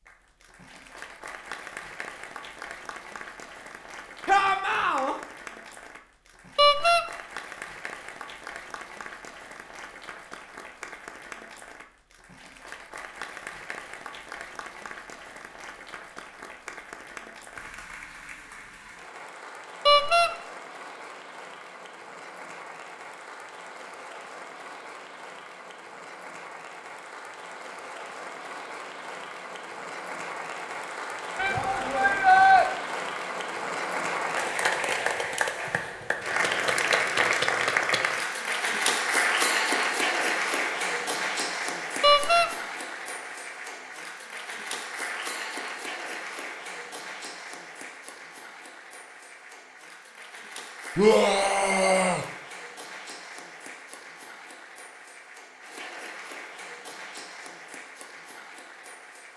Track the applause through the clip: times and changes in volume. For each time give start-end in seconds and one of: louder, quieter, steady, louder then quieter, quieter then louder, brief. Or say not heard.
0.0-59.3 louder then quieter.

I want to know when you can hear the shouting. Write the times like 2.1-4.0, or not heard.
4.2-5.2, 31.4-32.6, 51.0-52.2.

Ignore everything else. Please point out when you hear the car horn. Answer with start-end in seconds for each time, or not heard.
6.5-7.0, 19.9-20.3, 42.0-42.5.